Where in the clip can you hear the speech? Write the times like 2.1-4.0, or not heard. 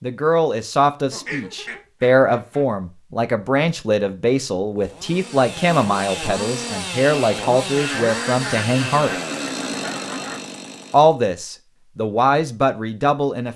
0.0-9.1, 10.9-13.5.